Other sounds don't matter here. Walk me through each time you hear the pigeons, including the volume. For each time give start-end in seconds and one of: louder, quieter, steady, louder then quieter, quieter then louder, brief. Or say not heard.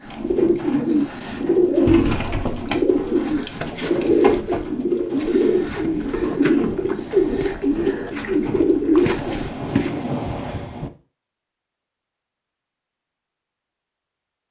0.1-10.0 steady.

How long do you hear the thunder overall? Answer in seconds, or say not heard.
2 s.